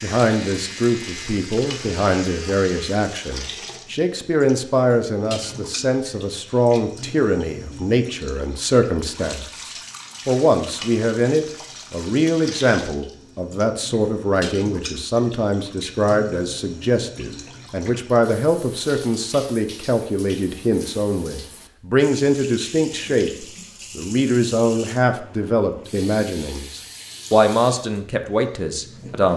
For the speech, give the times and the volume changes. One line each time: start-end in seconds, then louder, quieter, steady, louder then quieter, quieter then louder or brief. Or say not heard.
0.0-29.3 steady.